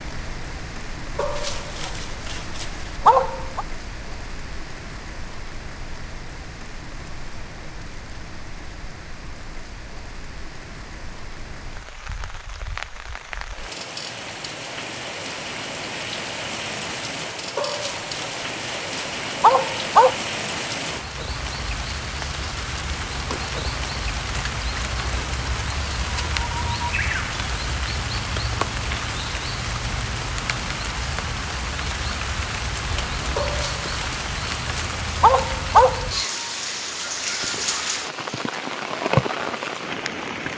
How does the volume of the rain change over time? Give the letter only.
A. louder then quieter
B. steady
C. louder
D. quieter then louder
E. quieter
C.